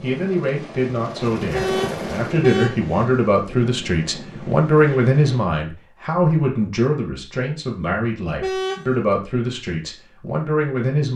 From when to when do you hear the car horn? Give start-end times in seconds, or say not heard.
1.5-3.0, 8.4-9.0.